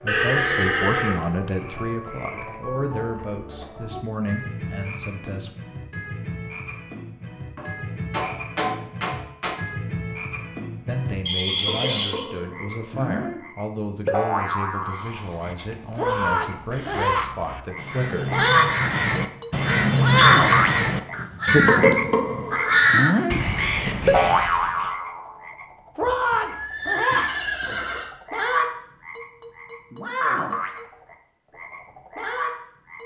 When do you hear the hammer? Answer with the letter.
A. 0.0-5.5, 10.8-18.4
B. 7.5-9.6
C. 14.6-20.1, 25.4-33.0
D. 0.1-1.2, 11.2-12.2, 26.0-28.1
B.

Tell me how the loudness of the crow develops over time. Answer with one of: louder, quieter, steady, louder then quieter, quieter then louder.
louder.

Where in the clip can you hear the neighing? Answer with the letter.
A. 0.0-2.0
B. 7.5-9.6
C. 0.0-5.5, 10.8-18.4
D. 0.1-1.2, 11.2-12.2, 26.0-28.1
D.